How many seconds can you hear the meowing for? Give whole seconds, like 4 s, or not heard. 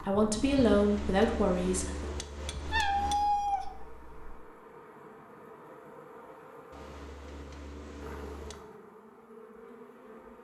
2 s.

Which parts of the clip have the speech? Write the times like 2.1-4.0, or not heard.
0.0-2.0.